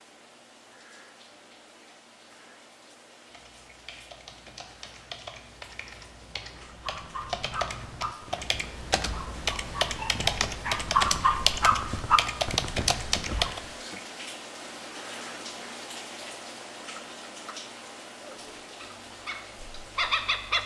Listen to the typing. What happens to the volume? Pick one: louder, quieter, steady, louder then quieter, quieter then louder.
louder.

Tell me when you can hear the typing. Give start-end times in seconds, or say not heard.
3.2-13.6.